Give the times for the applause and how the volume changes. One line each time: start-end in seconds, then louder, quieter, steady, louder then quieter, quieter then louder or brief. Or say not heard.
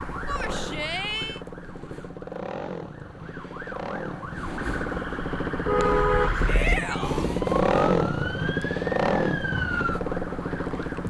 not heard.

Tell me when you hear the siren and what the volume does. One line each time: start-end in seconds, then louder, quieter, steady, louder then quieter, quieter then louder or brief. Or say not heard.
0.0-11.0 louder.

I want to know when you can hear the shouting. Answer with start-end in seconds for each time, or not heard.
0.2-1.4, 6.5-7.3.